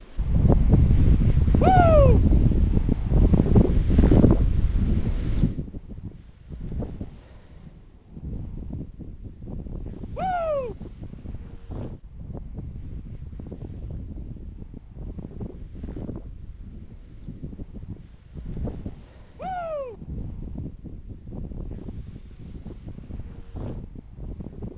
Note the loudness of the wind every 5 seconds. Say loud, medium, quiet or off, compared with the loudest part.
loud, quiet, quiet, quiet, quiet.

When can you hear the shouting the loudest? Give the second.
2 s.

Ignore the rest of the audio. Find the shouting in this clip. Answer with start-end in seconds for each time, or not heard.
1.6-2.2, 10.2-10.8, 19.4-20.0.